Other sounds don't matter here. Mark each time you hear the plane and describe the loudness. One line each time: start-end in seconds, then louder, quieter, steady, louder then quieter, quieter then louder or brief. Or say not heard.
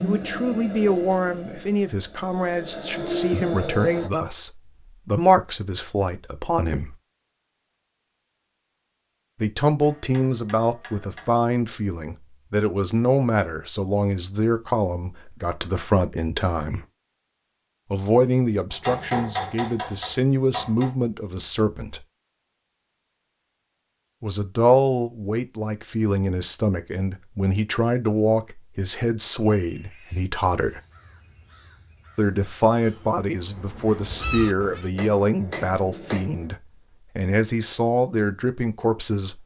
0.0-4.1 quieter then louder.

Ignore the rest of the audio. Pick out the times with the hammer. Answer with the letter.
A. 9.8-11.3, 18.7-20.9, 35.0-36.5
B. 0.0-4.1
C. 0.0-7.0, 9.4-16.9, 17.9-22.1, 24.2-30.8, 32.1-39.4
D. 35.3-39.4
A.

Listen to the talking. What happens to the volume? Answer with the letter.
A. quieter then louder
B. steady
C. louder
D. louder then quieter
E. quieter
B.